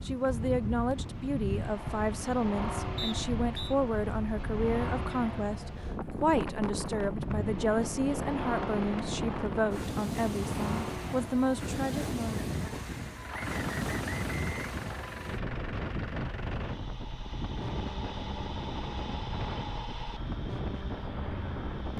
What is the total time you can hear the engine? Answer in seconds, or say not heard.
22 s.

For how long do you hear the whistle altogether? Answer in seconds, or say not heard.
3 s.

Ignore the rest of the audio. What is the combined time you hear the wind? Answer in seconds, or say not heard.
22 s.